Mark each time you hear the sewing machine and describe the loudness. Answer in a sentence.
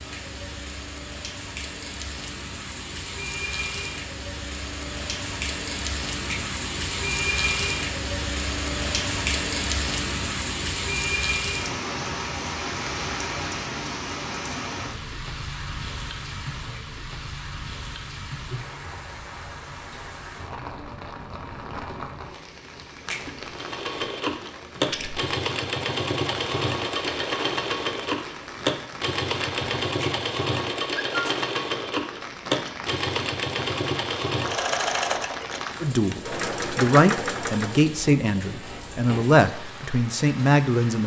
The sewing machine can be heard from 23.6 to 37.9 s, at a steady volume.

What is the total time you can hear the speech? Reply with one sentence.
The speech can be heard for 5 seconds in total.